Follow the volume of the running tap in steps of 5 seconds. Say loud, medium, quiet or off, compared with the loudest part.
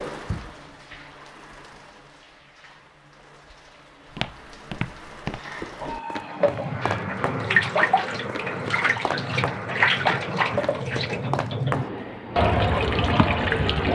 quiet, loud, loud.